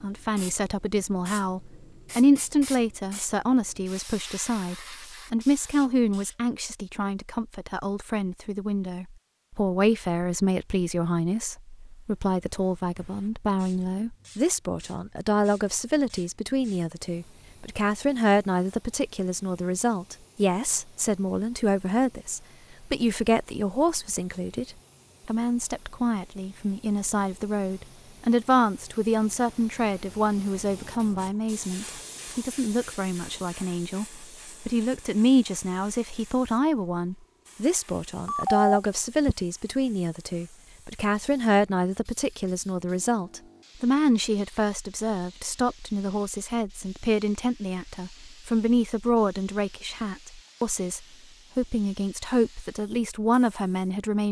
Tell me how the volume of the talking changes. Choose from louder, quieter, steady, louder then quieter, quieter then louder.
steady.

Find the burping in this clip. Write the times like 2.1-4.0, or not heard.
not heard.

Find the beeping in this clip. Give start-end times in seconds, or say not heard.
38.2-39.4.